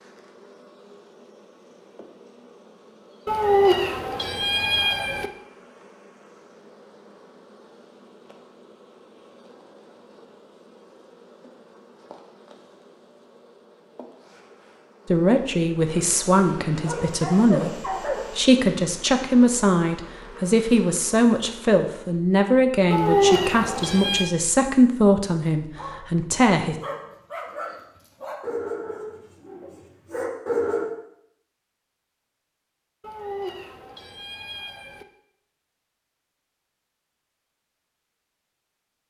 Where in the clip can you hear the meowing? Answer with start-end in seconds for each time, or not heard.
3.2-5.3, 22.9-24.3, 33.0-35.0.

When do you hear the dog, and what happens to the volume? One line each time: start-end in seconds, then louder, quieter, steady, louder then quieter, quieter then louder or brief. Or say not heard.
16.8-18.4 brief
25.6-26.1 brief
26.8-30.9 quieter then louder.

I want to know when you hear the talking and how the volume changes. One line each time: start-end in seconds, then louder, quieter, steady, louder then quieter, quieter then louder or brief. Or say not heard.
15.1-26.8 steady.